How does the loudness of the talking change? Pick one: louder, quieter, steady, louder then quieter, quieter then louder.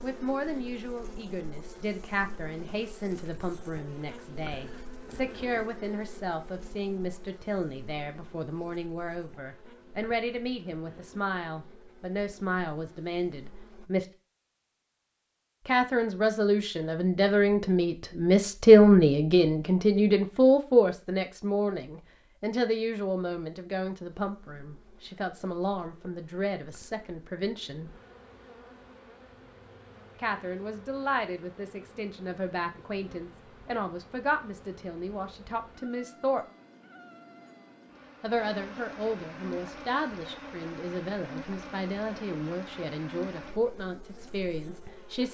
louder then quieter.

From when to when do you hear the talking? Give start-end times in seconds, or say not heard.
0.0-14.1, 15.7-27.9, 30.1-36.5, 38.2-45.2.